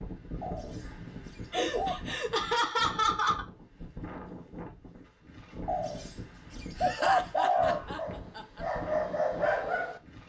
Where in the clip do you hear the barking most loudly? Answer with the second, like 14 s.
9 s.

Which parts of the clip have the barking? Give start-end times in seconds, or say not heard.
7.5-10.2.